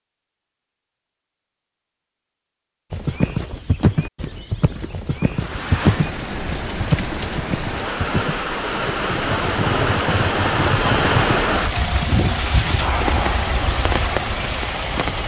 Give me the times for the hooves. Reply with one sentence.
The hooves can be heard from 2.9 to 11.4 s.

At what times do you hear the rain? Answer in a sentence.
The rain can be heard from 5.3 to 15.2 s.